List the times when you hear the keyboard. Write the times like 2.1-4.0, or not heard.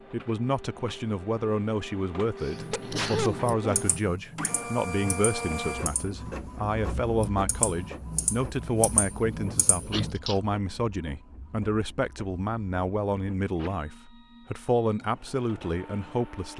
2.5-10.2.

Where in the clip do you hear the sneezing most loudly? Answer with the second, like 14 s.
3 s.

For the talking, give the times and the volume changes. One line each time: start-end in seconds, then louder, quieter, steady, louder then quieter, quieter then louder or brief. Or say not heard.
0.1-16.5 steady.